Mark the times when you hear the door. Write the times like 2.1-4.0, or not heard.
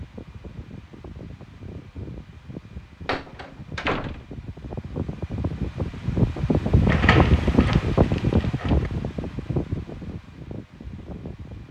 3.0-4.2, 6.8-8.9.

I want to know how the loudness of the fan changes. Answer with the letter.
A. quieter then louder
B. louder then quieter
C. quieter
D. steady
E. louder
B.